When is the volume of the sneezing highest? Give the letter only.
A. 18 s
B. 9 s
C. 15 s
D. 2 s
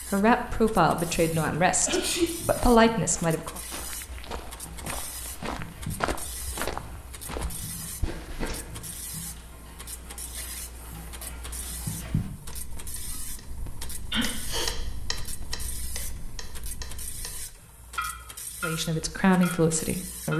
D.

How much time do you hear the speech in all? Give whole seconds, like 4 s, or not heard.
5 s.